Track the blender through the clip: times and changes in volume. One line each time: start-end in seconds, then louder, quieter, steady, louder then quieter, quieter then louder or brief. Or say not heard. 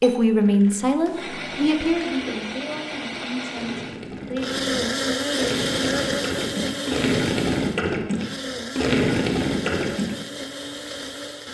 0.0-11.4 louder then quieter.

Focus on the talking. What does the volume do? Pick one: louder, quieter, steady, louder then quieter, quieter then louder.
quieter.